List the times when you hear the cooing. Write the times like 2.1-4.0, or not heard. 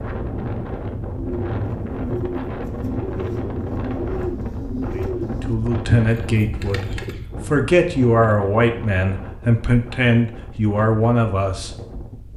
1.1-7.5.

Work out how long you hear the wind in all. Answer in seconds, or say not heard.
12 s.